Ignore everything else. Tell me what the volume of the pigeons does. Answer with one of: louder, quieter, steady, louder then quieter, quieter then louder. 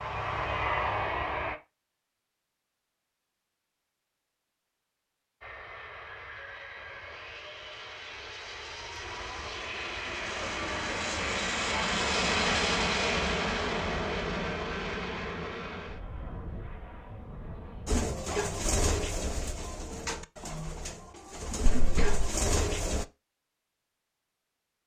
quieter then louder.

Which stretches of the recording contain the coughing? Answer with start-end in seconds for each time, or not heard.
21.6-22.4.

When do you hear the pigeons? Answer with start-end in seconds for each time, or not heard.
17.9-23.1.